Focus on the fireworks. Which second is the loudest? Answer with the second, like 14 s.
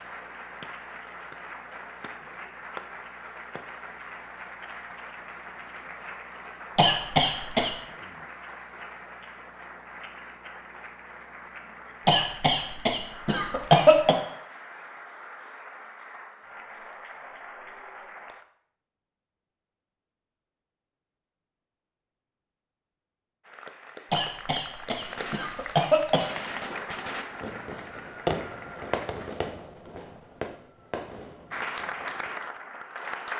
28 s.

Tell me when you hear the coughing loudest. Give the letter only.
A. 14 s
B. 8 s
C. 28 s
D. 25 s
A.